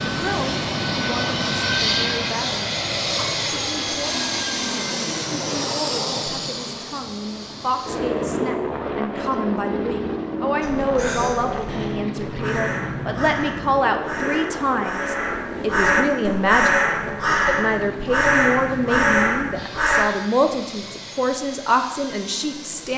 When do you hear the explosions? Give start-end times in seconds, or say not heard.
not heard.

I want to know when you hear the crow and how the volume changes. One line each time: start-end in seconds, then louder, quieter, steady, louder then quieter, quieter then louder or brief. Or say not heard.
10.6-20.1 louder.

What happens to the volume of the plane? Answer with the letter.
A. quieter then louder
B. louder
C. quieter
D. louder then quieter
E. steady
C.